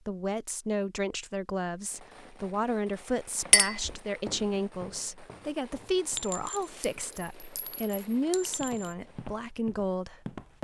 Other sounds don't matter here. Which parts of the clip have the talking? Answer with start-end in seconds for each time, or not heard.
0.1-10.5.